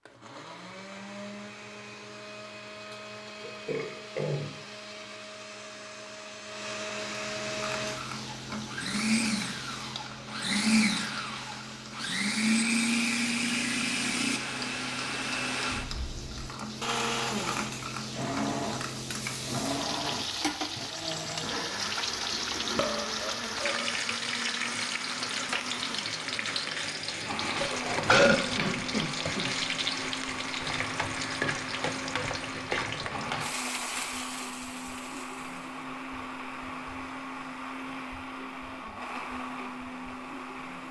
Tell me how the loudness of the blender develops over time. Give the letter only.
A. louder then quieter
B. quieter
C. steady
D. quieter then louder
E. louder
A.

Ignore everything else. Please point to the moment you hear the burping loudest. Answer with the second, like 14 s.
28 s.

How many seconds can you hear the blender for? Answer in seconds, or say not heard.
41 s.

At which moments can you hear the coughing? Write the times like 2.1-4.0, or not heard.
28.2-29.6.